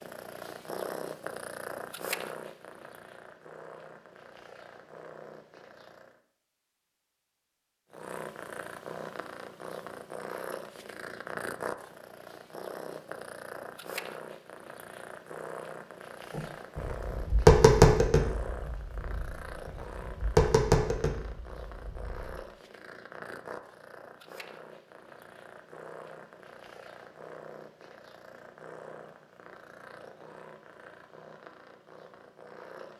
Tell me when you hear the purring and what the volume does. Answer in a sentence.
You can hear the purring from 0.0 to 6.2 s, getting quieter; and from 7.9 to 32.9 s, getting quieter.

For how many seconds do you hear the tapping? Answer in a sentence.
You can hear the tapping for 6 seconds altogether.